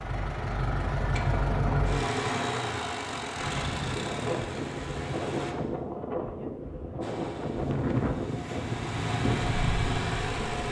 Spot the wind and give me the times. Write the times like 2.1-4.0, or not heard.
3.4-10.6.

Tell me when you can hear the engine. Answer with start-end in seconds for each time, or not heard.
0.0-5.5, 7.0-10.6.